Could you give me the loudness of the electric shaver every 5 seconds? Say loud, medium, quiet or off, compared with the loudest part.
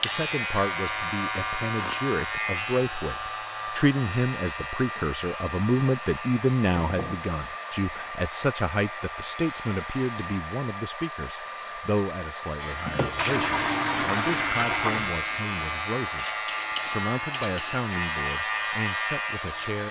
loud, medium, loud, loud.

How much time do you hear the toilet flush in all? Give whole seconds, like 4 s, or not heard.
2 s.